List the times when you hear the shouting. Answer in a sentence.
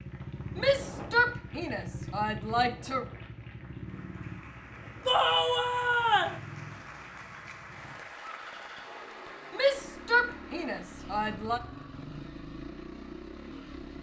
You can hear the shouting from 0.6 to 3.0 s, from 5.0 to 6.4 s and from 9.5 to 11.6 s.